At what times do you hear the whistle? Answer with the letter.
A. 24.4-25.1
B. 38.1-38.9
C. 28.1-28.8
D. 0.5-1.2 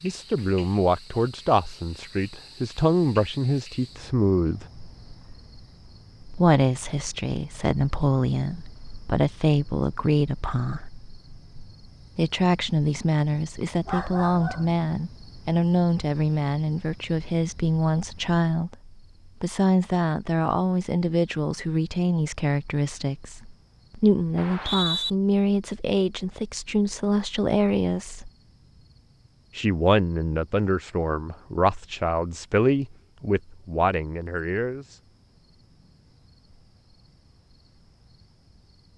A.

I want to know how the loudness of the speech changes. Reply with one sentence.
The volume of the speech stays about the same.